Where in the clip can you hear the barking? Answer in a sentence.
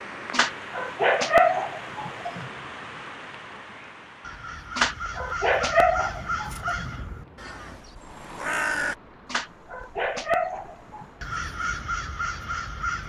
The barking can be heard from 0.3 to 2.5 s, from 4.8 to 7.0 s and from 9.2 to 11.1 s.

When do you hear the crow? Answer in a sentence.
The crow can be heard from 4.2 to 8.9 s and from 11.2 to 13.0 s.